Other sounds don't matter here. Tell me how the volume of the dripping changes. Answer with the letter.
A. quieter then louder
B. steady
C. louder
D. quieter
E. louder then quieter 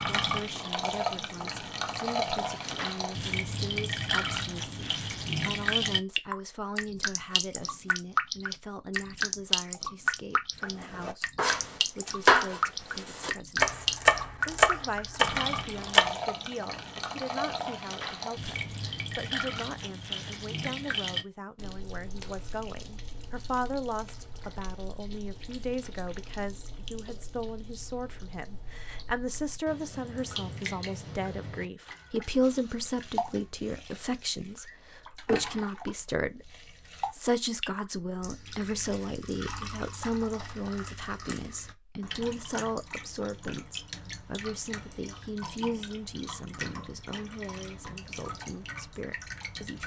D.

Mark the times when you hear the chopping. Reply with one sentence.
The chopping can be heard from 10.8 to 16.1 s.